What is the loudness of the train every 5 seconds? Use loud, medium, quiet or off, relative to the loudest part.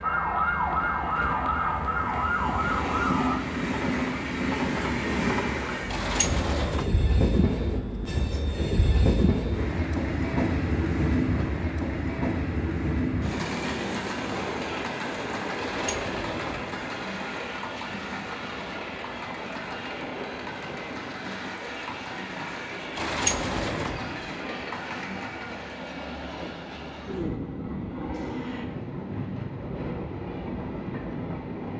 loud, loud, loud, medium, medium, medium, medium.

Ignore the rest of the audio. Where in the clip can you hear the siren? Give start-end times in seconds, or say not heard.
0.0-3.5.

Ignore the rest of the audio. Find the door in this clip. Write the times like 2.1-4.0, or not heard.
5.9-6.9, 15.6-16.8, 22.9-24.1.